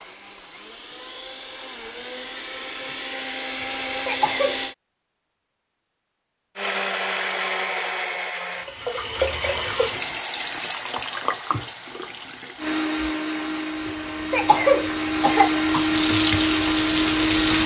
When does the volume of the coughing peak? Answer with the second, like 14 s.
15 s.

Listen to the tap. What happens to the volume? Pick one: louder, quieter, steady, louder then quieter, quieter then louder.
quieter then louder.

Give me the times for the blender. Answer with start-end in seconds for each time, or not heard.
0.0-4.8, 6.5-8.7, 12.6-17.6.